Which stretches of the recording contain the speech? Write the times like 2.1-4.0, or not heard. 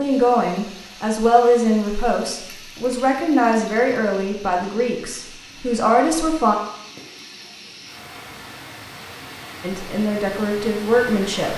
0.0-6.5, 9.6-11.5.